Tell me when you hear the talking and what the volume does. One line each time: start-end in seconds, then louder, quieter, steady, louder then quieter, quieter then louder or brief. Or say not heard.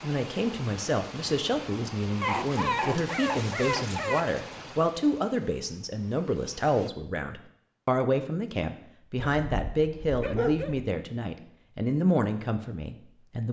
0.0-13.4 steady.